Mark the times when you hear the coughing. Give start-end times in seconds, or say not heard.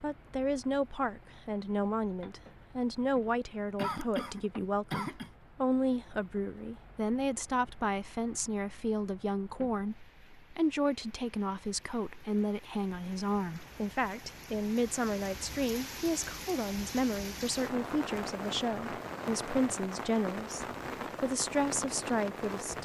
3.8-5.3.